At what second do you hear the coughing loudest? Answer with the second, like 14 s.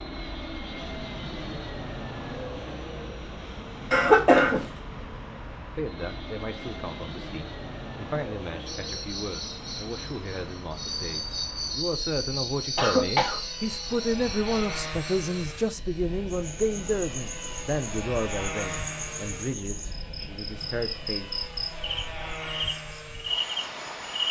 4 s.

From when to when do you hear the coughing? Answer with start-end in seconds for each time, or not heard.
3.9-4.7, 12.8-13.4.